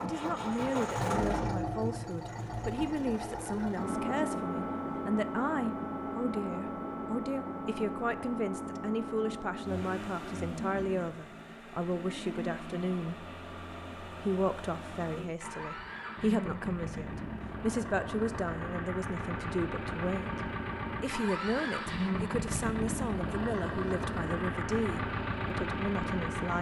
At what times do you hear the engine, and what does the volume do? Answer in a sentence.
The engine can be heard from 0.0 to 26.5 s, getting quieter then louder.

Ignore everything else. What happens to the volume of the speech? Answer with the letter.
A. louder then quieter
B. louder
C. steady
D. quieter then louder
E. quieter
C.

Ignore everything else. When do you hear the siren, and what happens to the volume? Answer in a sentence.
The siren can't be heard in this clip.